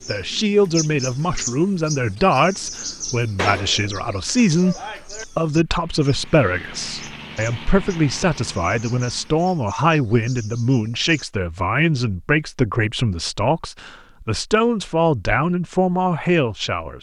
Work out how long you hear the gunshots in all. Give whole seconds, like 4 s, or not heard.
2 s.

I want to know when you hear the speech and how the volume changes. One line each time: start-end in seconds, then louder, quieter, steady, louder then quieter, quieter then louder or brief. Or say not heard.
0.1-16.9 steady.